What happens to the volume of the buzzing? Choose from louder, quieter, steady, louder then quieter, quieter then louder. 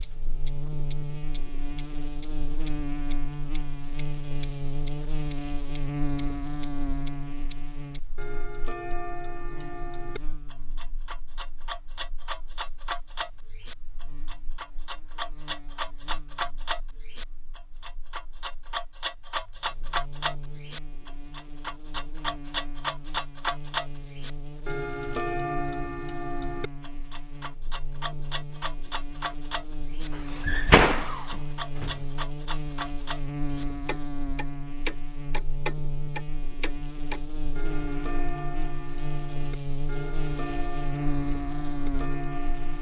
quieter then louder.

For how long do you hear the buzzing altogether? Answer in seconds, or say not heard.
43 s.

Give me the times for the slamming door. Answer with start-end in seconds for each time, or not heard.
30.4-31.9.